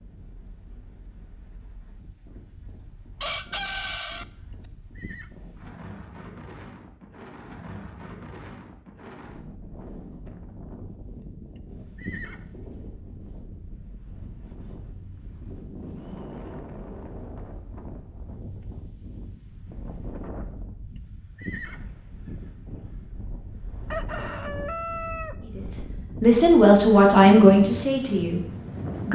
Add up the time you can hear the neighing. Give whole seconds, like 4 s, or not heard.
3 s.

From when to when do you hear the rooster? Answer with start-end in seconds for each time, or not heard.
2.6-4.2, 23.9-25.4.